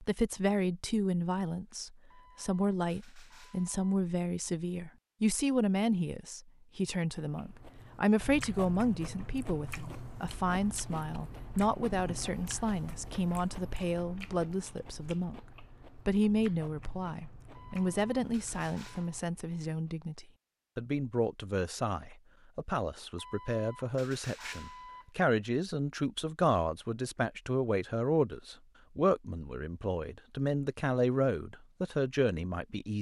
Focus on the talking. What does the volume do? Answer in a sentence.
The loudness of the talking stays about the same.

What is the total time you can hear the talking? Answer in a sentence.
The talking can be heard for 33 seconds in total.